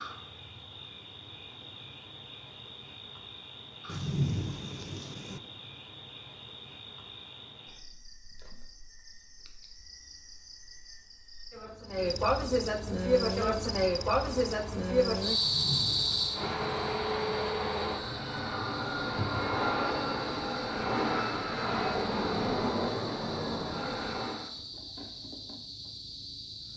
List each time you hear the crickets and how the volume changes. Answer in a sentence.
You can hear the crickets from 0.0 to 26.7 s, getting louder then quieter.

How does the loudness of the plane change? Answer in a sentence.
The loudness of the plane goes up.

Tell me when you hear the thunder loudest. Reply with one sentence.
The volume of the thunder peaks at 4 seconds.